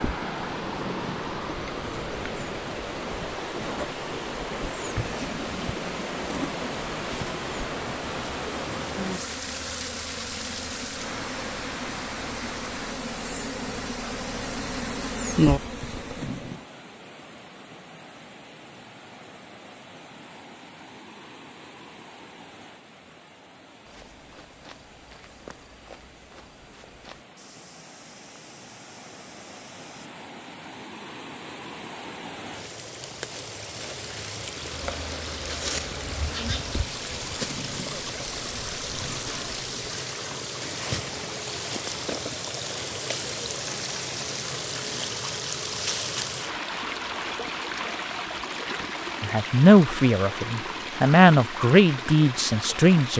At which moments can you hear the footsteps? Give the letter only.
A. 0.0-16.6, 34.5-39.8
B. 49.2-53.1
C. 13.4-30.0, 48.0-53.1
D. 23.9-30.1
D.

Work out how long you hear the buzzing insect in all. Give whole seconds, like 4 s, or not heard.
22 s.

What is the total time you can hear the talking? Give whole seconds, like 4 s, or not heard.
4 s.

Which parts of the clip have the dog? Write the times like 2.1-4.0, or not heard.
not heard.